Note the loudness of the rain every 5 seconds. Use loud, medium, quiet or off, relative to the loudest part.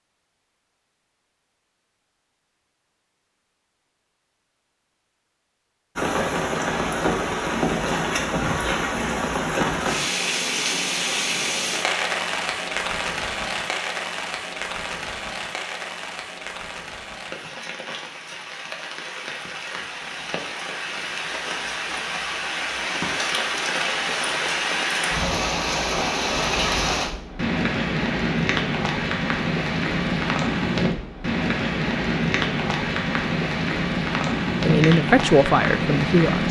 off, loud, loud, medium, loud, loud, loud, loud.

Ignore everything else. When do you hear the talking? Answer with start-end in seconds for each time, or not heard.
34.5-36.4.